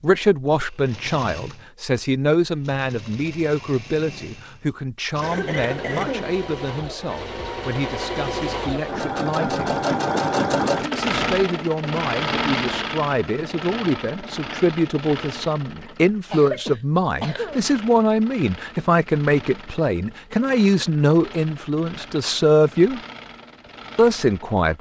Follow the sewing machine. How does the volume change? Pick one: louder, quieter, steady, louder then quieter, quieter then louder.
louder then quieter.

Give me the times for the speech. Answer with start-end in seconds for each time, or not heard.
0.0-9.7, 10.8-23.0, 23.9-24.7.